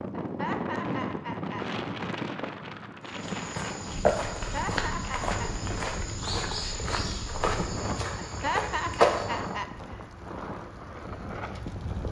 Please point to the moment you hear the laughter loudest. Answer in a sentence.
The volume of the laughter peaks at 9 seconds.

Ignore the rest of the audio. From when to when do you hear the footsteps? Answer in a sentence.
The footsteps can be heard from 3.0 to 9.6 s.